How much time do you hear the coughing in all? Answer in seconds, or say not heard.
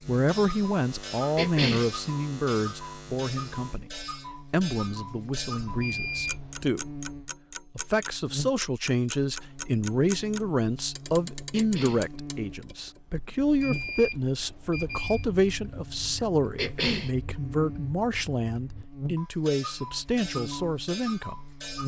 2 s.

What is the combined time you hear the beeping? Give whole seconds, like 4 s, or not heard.
3 s.